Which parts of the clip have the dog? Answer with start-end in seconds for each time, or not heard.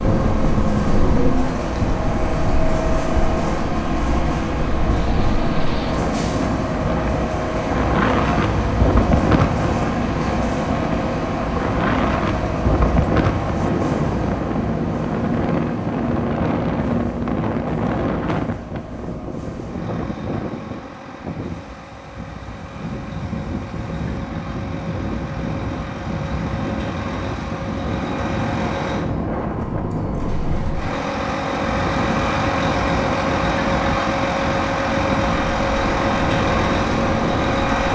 not heard.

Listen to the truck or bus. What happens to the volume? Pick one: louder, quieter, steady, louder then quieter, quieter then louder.
quieter then louder.